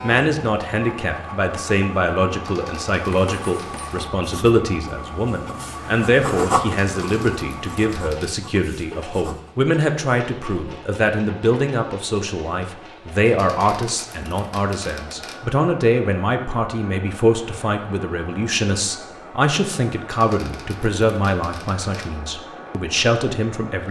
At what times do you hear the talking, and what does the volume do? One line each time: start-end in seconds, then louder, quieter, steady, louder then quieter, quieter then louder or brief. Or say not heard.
0.0-23.8 steady.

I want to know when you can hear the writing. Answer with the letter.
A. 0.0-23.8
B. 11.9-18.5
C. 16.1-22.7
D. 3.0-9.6
D.